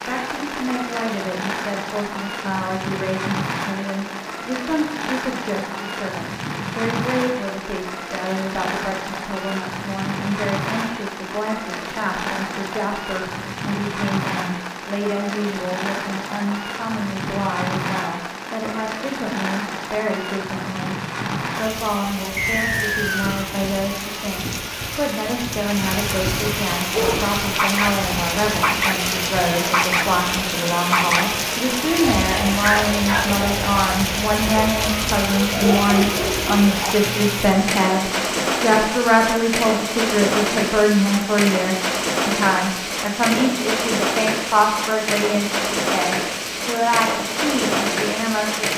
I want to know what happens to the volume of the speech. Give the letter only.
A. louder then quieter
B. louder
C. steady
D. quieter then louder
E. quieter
B.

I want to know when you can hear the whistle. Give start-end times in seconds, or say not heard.
22.4-23.5.